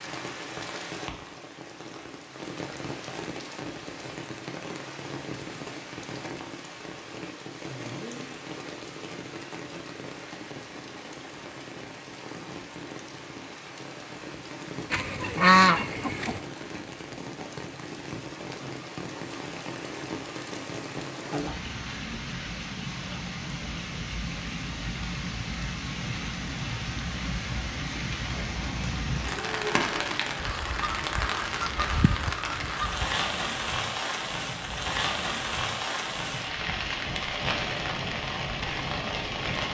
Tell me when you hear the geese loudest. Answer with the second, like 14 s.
16 s.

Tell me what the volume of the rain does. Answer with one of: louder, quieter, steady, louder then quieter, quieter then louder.
louder.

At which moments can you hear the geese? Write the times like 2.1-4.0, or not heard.
14.9-16.4, 30.4-33.2.